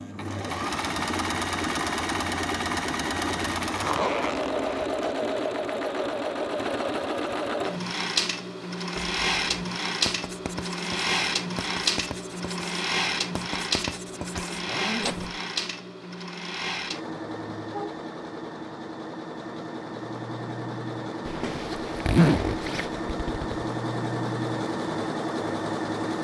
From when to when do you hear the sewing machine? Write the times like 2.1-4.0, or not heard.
0.0-26.1.